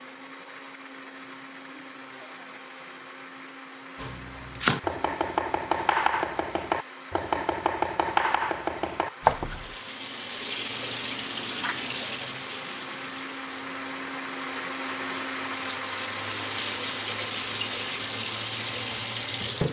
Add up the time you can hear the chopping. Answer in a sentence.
The chopping can be heard for 6 seconds in total.